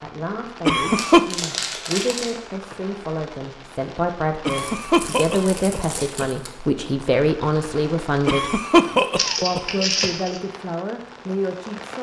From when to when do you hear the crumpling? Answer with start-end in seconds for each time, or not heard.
0.9-2.4, 4.5-6.5, 9.2-10.4.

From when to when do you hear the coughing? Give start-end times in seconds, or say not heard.
0.7-1.2, 4.5-6.2, 8.2-10.1.